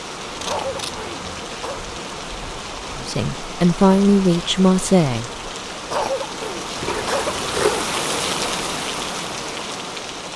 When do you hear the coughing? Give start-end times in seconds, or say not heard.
0.5-1.9, 5.9-7.8.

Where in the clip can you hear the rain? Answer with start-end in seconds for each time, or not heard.
0.0-10.3.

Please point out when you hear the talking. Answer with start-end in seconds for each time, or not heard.
3.0-5.3.